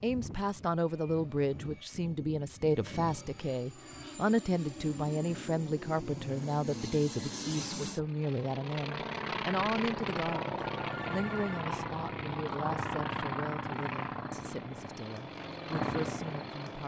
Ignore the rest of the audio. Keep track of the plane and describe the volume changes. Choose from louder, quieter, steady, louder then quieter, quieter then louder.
louder.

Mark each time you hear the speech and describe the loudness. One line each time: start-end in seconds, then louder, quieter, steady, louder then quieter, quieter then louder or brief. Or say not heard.
0.0-16.8 quieter.